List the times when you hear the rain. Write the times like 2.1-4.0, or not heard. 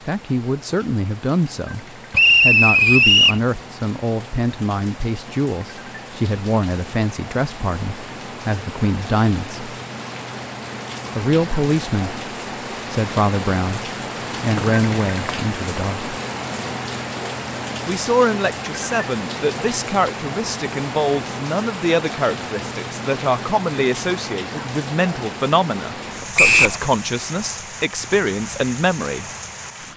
0.0-29.9.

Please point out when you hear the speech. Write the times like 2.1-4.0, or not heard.
0.1-9.7, 11.2-12.2, 12.9-16.1, 17.9-29.2.